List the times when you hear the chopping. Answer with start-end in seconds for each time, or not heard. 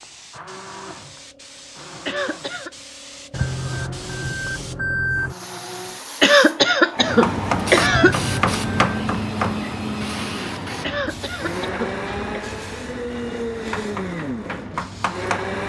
7.2-9.7, 13.7-15.6.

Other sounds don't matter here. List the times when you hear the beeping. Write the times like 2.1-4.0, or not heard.
3.3-5.3, 7.8-8.8.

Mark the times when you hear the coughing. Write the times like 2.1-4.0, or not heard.
2.0-2.7, 6.2-8.2, 10.8-12.4.